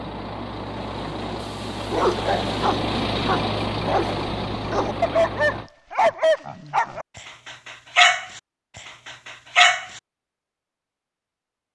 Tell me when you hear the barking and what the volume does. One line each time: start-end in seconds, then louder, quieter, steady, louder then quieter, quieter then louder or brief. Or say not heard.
1.9-10.0 louder then quieter.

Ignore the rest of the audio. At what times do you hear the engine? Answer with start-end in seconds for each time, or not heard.
0.0-5.7.